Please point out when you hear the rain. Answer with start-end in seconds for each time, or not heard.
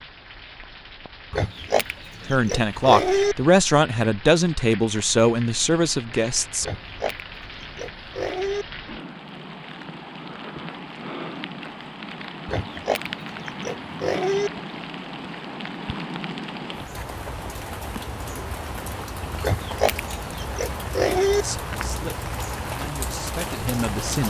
0.0-24.2.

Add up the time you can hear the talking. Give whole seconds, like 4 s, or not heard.
7 s.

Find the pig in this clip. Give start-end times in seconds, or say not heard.
1.3-3.4, 6.6-8.7, 12.4-14.5, 19.4-21.4.